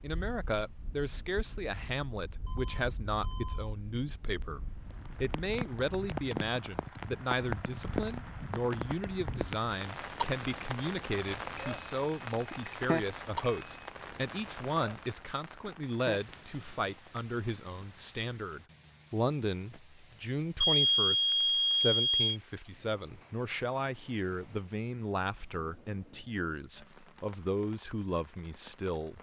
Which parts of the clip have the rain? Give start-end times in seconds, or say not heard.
0.0-29.1.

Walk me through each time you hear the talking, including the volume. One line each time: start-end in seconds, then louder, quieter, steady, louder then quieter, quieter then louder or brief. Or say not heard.
0.0-29.1 steady.